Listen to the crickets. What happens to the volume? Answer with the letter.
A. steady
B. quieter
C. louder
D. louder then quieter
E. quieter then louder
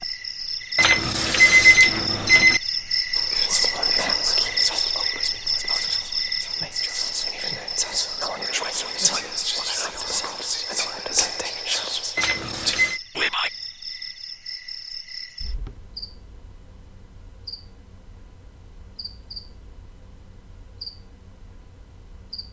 B.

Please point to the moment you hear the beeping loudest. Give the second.
2 s.